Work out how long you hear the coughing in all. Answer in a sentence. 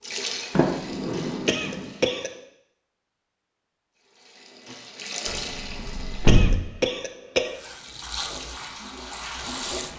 The coughing can be heard for 2 seconds in total.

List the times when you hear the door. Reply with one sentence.
The door can be heard from 0.6 to 1.9 s and from 5.2 to 6.7 s.